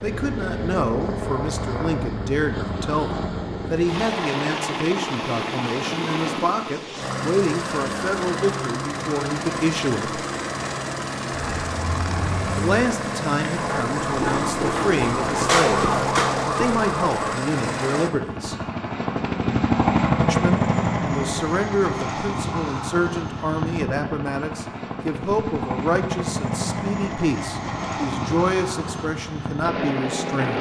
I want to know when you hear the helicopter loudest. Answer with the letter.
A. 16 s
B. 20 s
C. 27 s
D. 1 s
B.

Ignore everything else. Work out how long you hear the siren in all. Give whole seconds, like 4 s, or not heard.
6 s.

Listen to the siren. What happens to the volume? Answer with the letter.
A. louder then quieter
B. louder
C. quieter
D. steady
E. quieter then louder
B.